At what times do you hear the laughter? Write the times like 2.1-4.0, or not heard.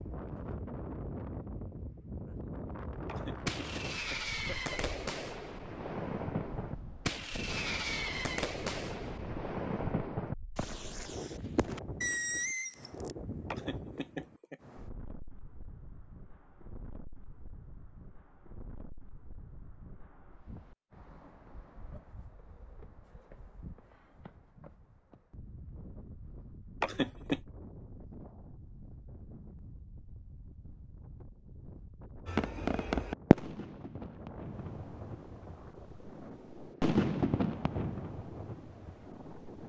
3.0-4.8, 13.5-14.6, 26.8-27.4.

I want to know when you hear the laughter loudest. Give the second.
27 s.